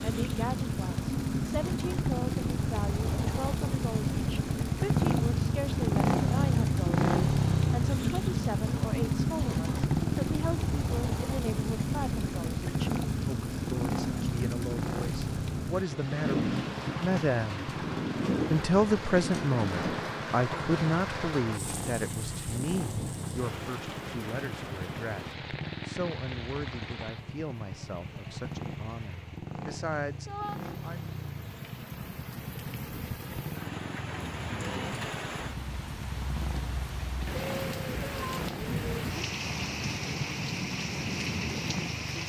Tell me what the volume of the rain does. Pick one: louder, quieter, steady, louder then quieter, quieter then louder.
quieter then louder.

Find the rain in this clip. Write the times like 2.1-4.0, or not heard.
0.0-42.2.